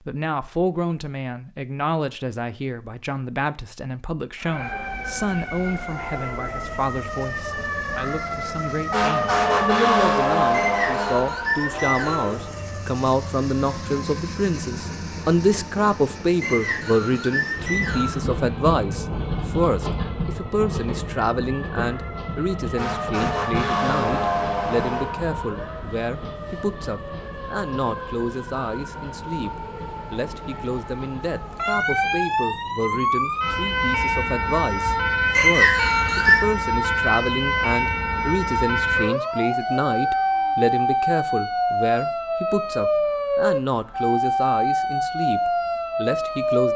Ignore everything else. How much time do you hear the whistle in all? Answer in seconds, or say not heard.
5 s.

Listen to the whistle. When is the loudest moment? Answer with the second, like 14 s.
36 s.